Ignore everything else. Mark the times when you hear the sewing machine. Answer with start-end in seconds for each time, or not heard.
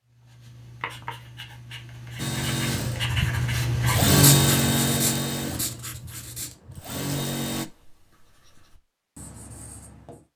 2.1-7.7.